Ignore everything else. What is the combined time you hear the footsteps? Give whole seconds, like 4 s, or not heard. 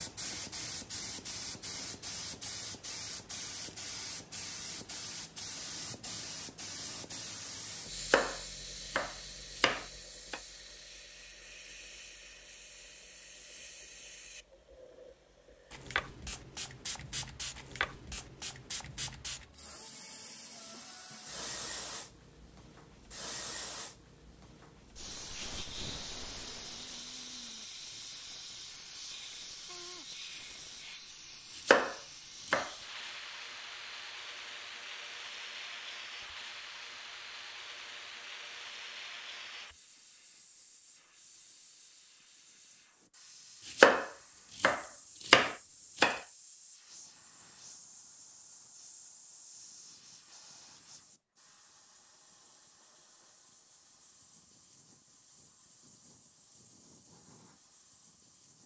not heard.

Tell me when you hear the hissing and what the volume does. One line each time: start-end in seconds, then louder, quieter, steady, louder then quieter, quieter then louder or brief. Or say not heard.
0.0-58.6 quieter.